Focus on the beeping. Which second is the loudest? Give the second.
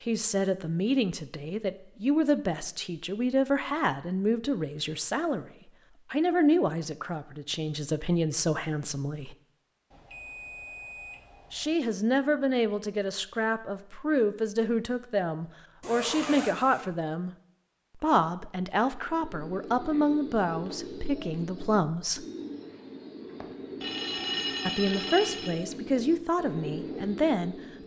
24 s.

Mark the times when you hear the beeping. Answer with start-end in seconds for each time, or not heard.
9.9-11.8, 23.4-25.6.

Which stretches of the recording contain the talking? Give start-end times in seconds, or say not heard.
0.0-5.5, 6.1-9.3, 11.5-17.3, 17.9-22.2, 24.6-27.6.